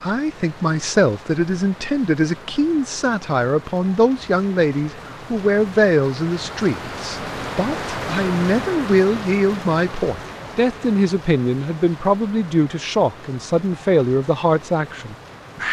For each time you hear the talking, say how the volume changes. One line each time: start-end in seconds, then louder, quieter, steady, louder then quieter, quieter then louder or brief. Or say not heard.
0.0-15.6 steady.